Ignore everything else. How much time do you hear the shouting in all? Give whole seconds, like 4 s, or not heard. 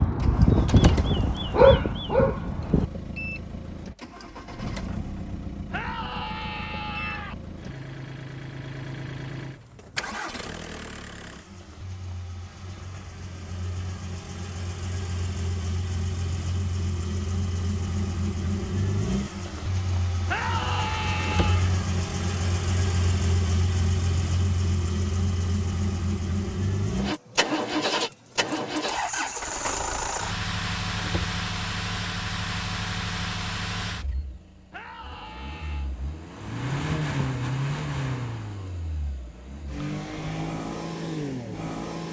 4 s.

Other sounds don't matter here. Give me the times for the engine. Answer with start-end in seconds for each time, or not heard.
0.0-42.0.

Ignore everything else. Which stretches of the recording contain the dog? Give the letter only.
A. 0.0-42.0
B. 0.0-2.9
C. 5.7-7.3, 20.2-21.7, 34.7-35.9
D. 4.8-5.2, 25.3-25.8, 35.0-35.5
B.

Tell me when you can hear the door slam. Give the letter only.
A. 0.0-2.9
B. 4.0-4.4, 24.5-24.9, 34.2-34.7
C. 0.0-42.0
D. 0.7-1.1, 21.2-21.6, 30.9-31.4
D.